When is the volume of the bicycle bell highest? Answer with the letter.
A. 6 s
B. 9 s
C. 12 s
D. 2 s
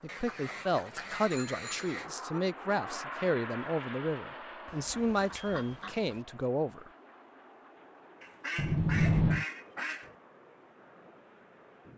B.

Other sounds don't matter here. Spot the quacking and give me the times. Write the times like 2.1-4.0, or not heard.
0.1-2.1, 4.7-6.2, 8.2-10.2.